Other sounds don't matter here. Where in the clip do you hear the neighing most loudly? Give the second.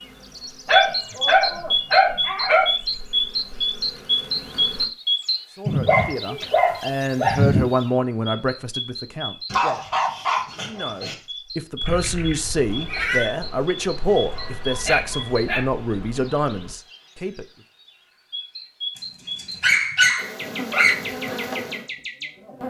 13 s.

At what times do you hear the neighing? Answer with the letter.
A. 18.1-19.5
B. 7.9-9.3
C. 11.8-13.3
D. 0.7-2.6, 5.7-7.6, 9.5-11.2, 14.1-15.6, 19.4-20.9
C.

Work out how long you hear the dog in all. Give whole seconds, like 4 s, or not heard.
9 s.